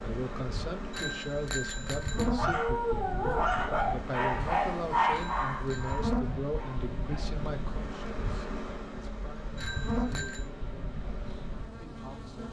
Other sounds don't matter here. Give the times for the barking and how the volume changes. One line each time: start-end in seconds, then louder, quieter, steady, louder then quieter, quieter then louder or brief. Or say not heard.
2.3-7.4 quieter.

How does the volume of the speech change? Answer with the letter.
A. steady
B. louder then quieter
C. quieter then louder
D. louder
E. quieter
E.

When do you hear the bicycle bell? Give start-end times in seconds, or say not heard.
0.9-2.3, 5.1-6.0, 9.6-10.4.